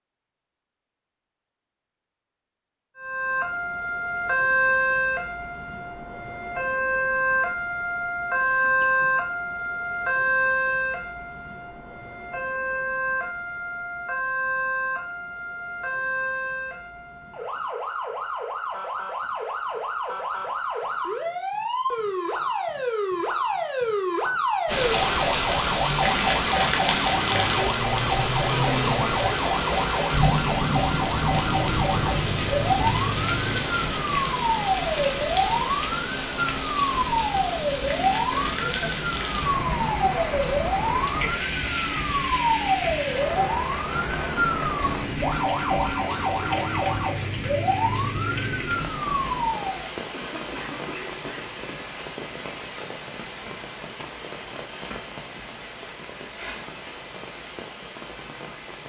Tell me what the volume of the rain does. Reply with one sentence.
The loudness of the rain goes down.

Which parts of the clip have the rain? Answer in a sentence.
You can hear the rain from 24.6 to 58.8 s.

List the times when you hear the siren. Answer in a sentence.
You can hear the siren from 3.0 to 49.9 s.